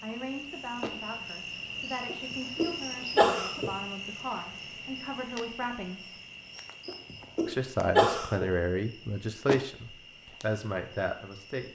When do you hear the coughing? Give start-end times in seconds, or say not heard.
2.1-3.8, 6.8-8.6.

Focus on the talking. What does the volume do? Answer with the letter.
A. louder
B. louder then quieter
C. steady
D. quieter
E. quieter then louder
A.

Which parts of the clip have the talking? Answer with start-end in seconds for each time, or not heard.
0.0-6.2, 7.5-11.6.